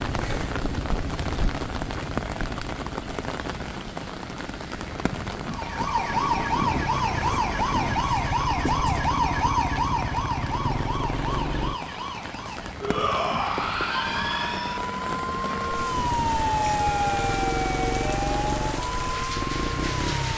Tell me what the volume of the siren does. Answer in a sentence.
The loudness of the siren goes down, then up.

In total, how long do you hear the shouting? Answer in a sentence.
The shouting can be heard for 2 seconds in total.